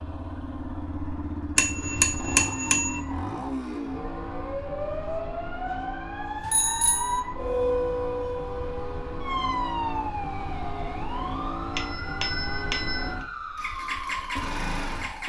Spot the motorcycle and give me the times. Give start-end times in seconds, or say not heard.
0.0-15.2.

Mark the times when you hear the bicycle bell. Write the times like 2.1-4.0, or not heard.
1.6-3.0, 6.4-7.2, 11.8-13.2.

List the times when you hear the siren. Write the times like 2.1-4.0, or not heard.
2.5-15.2.